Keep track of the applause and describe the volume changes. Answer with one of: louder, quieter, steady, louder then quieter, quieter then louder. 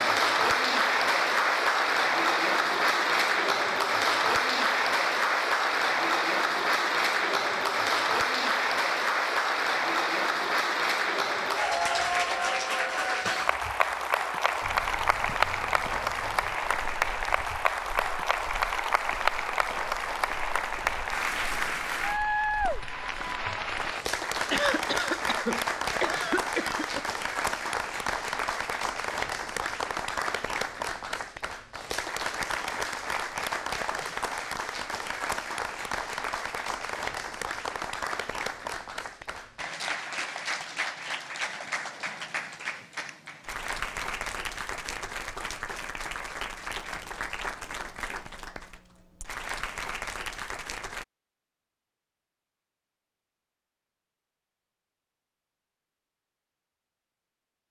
quieter.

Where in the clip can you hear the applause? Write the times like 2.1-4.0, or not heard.
0.0-51.0.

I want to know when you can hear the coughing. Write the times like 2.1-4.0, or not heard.
24.5-27.1.